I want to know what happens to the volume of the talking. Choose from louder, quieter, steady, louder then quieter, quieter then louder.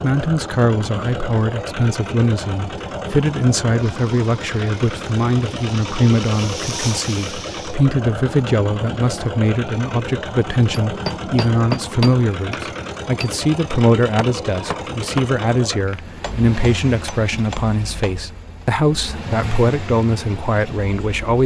steady.